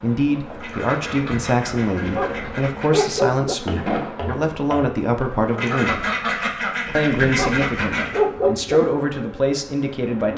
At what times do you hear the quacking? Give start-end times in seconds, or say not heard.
0.6-3.2, 5.5-8.2.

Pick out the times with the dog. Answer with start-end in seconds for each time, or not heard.
2.0-3.5, 7.2-8.8.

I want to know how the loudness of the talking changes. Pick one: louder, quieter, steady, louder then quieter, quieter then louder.
steady.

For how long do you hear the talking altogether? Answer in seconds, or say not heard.
9 s.